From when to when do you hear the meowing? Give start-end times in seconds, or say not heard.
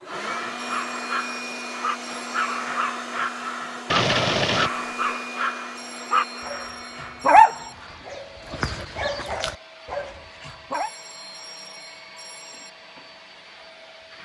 3.9-5.2.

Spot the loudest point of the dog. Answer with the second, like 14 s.
7 s.